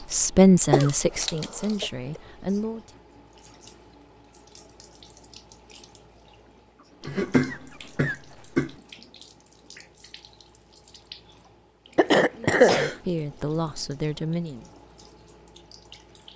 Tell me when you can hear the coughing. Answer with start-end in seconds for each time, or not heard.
0.7-2.2, 7.0-8.7, 11.9-12.9.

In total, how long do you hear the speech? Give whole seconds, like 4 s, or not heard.
5 s.